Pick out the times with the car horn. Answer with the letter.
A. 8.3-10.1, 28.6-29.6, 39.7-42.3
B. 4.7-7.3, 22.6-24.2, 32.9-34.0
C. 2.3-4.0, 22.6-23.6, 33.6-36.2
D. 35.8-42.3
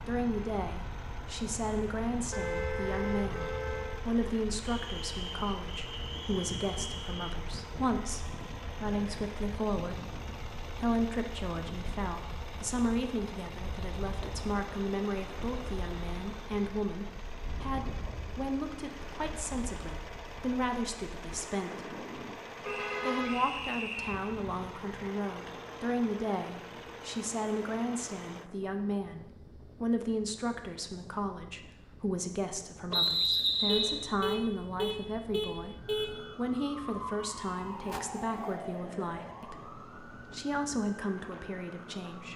C.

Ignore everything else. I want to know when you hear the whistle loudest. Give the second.
33 s.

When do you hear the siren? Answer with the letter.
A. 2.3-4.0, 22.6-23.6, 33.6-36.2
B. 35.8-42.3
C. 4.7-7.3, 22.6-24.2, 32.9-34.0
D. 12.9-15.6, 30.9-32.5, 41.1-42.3
B.